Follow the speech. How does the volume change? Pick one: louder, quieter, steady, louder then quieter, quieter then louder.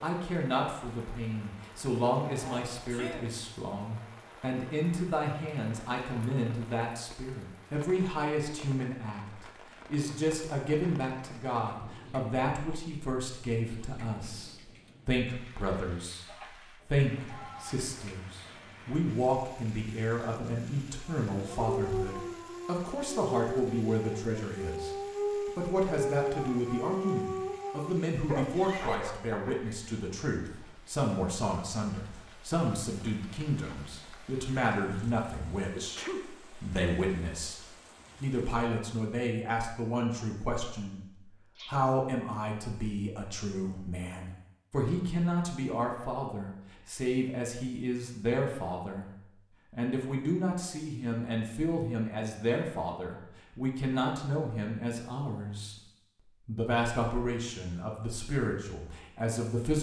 steady.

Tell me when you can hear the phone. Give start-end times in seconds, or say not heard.
16.2-17.8.